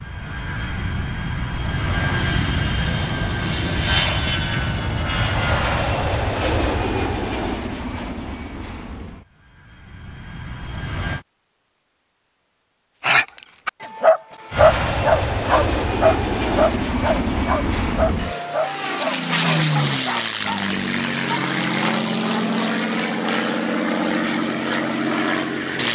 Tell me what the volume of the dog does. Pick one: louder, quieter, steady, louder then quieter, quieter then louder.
quieter.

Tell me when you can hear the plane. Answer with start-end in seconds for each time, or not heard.
0.0-11.2, 14.5-25.8.